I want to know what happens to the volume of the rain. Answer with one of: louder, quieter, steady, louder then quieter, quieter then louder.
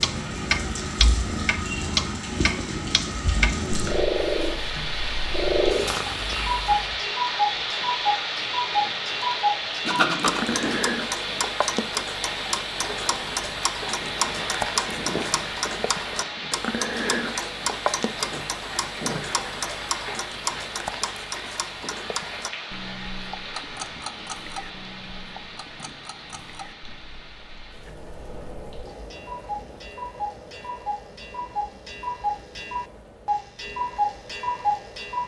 quieter.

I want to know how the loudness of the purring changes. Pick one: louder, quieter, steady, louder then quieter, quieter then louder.
louder.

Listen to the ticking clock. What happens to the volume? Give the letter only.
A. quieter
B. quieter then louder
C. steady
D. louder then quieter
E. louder
B.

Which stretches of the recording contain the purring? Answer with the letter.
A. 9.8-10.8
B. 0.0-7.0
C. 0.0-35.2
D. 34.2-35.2
B.